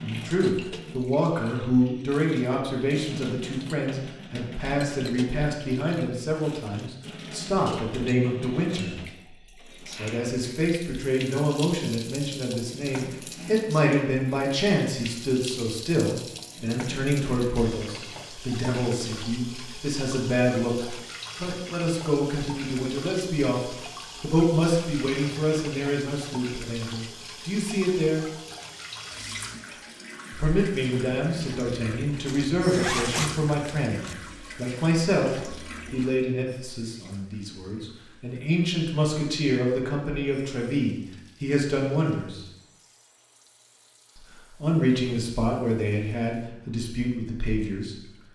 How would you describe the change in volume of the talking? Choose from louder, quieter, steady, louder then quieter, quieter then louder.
steady.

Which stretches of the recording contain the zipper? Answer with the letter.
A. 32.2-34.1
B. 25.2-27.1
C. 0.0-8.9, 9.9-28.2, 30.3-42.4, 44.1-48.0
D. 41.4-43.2
A.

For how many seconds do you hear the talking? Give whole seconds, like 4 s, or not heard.
43 s.